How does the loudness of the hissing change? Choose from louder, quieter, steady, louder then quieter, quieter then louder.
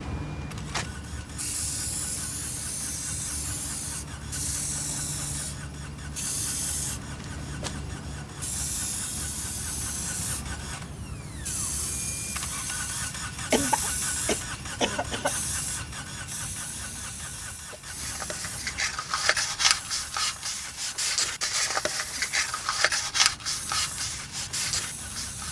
quieter.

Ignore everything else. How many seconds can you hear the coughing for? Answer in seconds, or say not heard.
2 s.